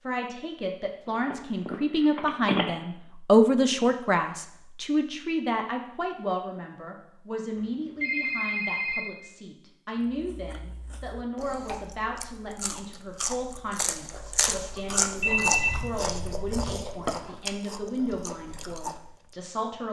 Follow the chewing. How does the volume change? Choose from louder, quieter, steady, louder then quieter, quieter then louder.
louder then quieter.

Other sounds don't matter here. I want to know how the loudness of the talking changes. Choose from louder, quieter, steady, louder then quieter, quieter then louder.
quieter.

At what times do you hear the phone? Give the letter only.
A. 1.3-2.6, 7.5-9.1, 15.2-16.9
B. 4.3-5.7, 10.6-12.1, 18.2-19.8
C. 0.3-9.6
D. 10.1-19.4
A.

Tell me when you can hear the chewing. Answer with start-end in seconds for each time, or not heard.
10.1-19.4.